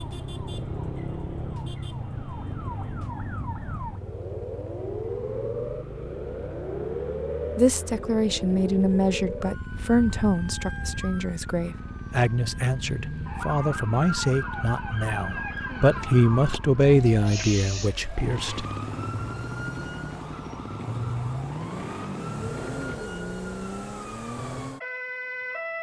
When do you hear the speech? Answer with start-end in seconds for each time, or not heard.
7.5-18.6.